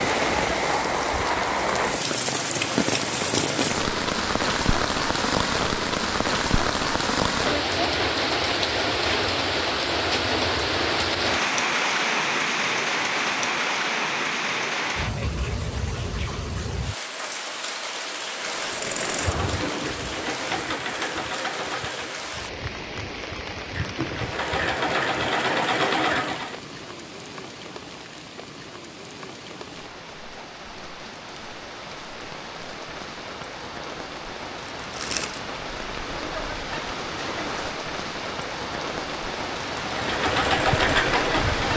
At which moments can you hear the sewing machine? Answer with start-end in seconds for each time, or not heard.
18.3-26.6, 39.8-41.7.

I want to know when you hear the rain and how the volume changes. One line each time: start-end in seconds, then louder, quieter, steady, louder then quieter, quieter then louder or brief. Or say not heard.
0.0-41.7 quieter then louder.